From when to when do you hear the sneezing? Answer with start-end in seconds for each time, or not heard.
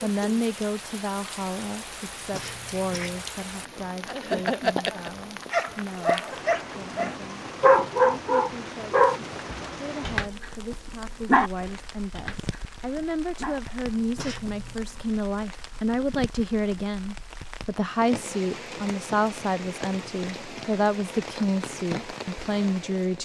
2.3-3.3, 14.2-14.8.